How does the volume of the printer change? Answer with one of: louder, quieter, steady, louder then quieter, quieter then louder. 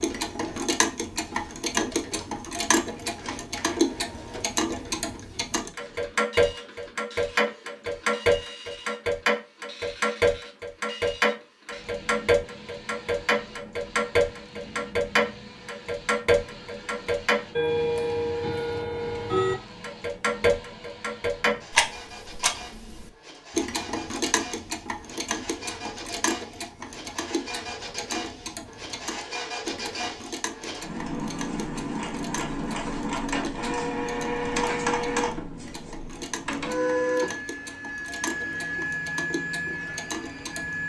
louder.